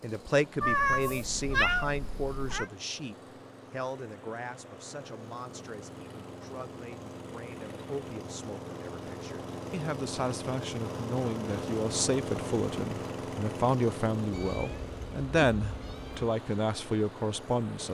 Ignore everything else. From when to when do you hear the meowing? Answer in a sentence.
The meowing can be heard from 0.6 to 2.7 s and from 14.3 to 16.3 s.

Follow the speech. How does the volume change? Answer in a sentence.
The loudness of the speech goes down, then up.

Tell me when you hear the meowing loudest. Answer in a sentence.
The loudest moment of the meowing is at 1 second.